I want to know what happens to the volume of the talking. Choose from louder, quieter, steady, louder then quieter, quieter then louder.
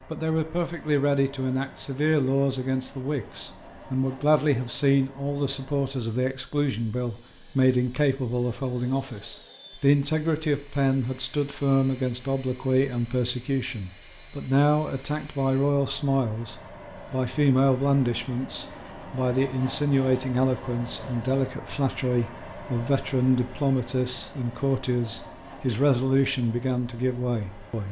steady.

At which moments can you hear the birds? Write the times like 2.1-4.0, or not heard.
not heard.